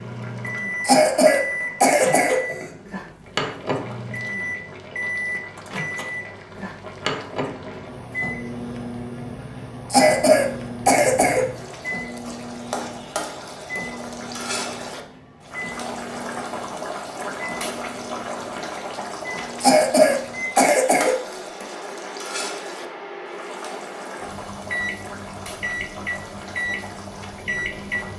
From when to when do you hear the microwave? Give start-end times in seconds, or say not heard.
0.0-28.1.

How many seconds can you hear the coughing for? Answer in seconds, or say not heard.
5 s.